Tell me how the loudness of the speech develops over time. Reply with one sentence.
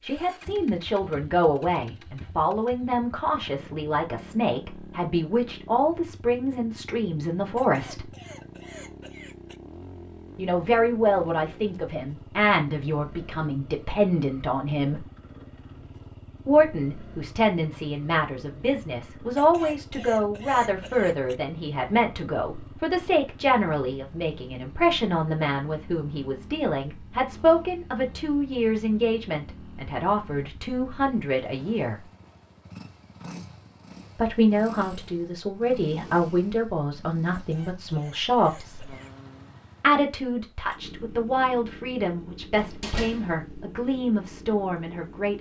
The volume of the speech stays about the same.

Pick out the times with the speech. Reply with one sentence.
The speech can be heard from 0.0 to 8.1 s, from 10.3 to 15.1 s, from 16.4 to 31.9 s, from 34.1 to 39.0 s and from 39.8 to 45.3 s.